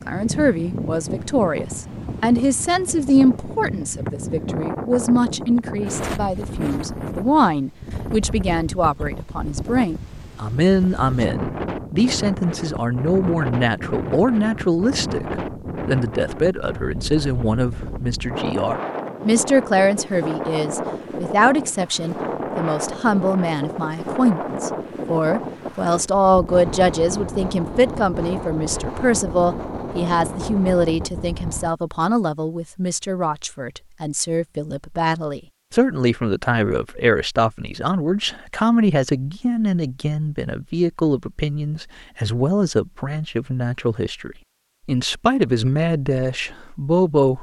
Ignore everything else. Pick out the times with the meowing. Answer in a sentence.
You can't hear the meowing here.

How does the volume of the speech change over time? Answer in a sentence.
The loudness of the speech stays about the same.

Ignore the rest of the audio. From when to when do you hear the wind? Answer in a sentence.
The wind can be heard from 0.0 to 31.7 s.